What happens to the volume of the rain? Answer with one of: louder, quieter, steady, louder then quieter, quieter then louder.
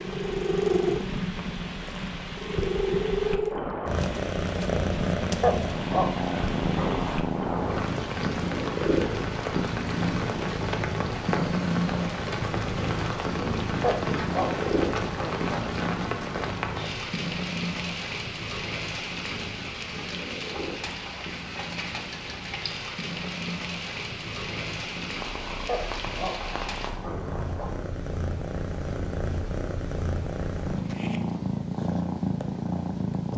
steady.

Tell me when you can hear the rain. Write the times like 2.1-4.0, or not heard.
0.0-26.9.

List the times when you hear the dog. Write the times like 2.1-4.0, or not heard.
5.4-7.3, 13.8-15.7, 25.6-27.8.